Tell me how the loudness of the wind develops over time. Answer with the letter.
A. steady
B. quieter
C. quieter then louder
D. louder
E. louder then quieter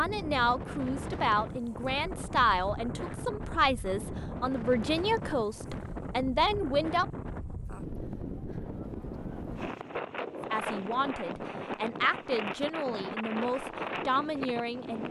A.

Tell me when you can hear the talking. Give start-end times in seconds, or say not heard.
0.0-7.0, 10.5-15.0.